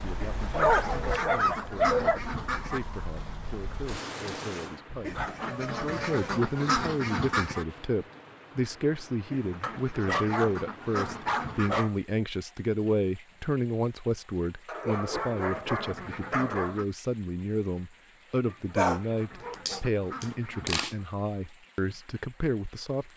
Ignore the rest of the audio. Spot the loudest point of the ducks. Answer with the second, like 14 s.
7 s.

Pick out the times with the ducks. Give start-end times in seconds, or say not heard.
0.2-2.8, 5.0-7.7, 9.3-11.9, 15.1-16.9, 18.4-21.0.